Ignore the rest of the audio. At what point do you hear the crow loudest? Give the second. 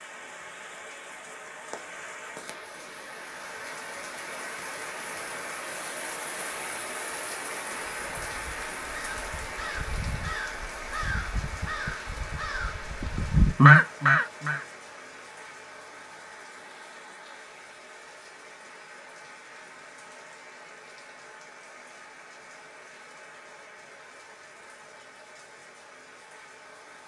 14 s.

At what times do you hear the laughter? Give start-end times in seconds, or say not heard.
not heard.